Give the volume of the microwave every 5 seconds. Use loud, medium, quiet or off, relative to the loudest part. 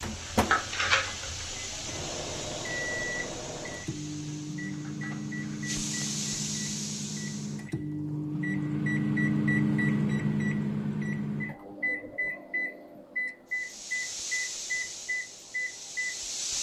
medium, loud, loud, medium.